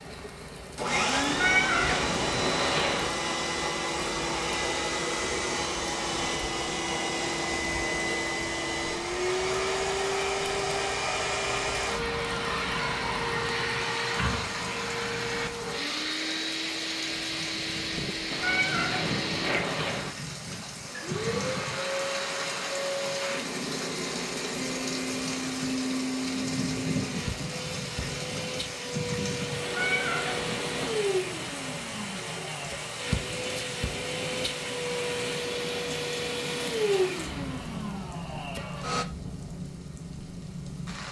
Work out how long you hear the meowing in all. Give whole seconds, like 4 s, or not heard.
5 s.